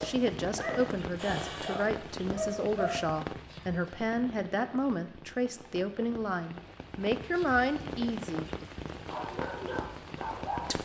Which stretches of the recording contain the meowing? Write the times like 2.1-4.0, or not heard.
not heard.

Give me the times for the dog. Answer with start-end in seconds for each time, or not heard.
0.0-3.0, 8.9-10.8.